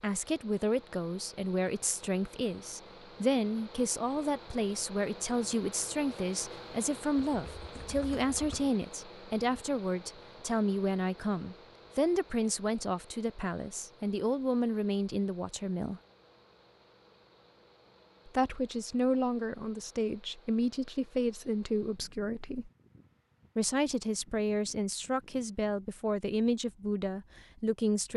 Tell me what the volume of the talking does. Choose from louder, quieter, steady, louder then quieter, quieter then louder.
steady.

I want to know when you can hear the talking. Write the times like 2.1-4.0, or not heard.
0.0-16.0, 18.2-22.7, 23.6-28.1.